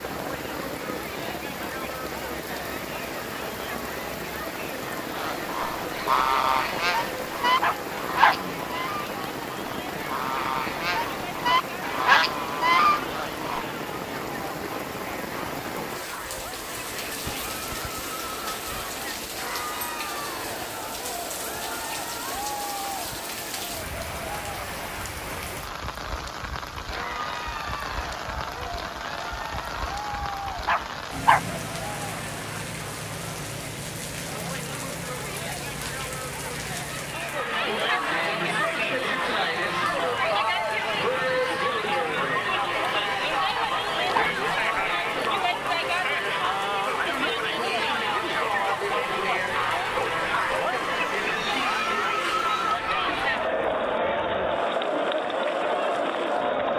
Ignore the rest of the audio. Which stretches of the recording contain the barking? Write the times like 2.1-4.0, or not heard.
7.6-8.6, 30.6-31.6, 43.5-44.4.